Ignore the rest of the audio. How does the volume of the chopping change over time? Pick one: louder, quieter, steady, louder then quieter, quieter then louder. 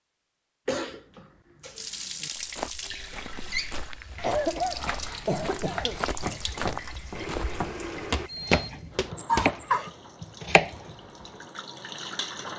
louder.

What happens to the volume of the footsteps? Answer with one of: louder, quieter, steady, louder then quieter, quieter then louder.
louder.